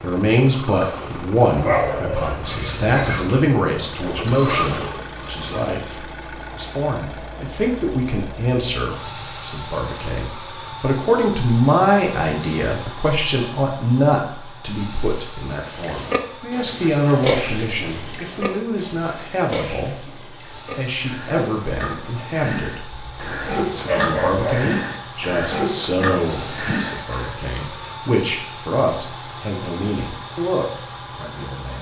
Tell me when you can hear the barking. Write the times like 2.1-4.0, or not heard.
1.6-3.4, 22.9-24.6.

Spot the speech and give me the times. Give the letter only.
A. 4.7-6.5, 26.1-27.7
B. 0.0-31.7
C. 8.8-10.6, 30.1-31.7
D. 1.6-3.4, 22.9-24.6
B.